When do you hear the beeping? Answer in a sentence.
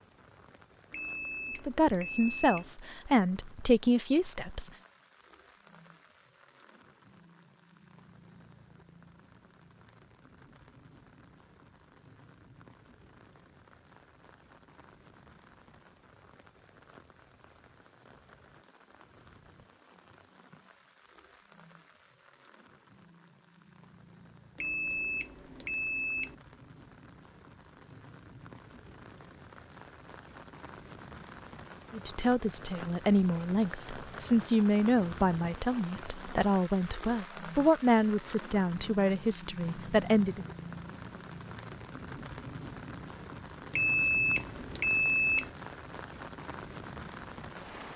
The beeping can be heard from 0.9 to 2.7 s, from 24.6 to 26.4 s and from 43.7 to 45.5 s.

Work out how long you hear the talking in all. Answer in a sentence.
The talking can be heard for 12 seconds in total.